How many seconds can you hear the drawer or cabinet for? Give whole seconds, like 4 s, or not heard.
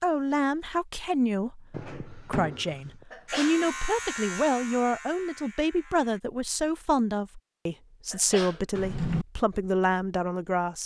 2 s.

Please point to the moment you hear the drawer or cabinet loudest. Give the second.
9 s.